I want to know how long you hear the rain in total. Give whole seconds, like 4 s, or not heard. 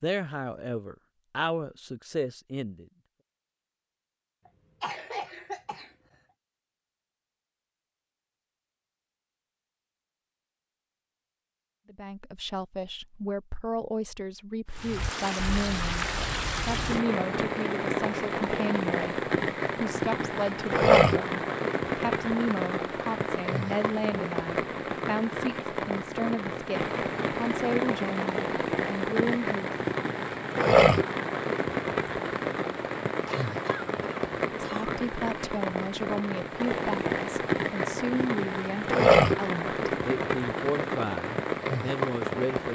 28 s.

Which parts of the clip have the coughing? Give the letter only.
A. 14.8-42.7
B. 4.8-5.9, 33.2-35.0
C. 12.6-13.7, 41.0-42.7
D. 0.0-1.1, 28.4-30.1
B.